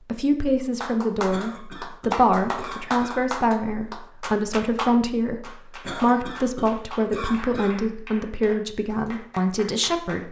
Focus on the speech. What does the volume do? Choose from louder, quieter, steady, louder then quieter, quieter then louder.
steady.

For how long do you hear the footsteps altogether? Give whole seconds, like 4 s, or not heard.
not heard.